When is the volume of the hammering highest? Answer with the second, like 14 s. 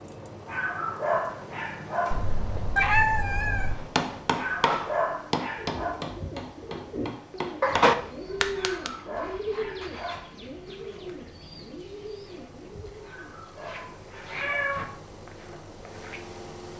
8 s.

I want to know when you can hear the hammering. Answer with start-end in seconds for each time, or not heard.
3.8-8.9.